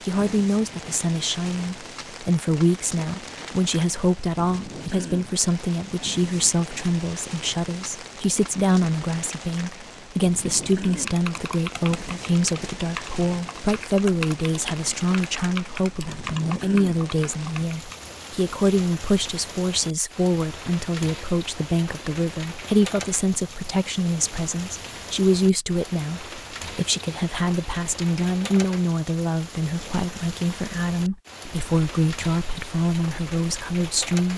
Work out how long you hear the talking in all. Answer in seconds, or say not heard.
34 s.